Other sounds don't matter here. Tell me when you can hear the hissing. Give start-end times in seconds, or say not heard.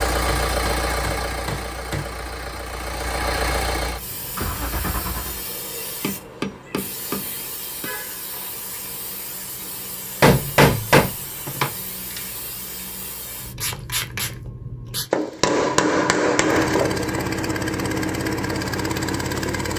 4.0-15.1.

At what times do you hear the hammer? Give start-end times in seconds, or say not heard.
0.2-2.2, 6.0-7.9, 10.2-12.2, 15.1-17.3.